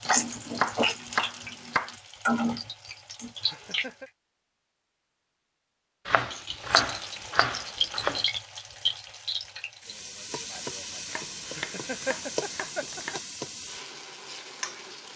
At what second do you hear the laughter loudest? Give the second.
12 s.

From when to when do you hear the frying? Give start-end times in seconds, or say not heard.
0.0-4.0, 6.3-15.1.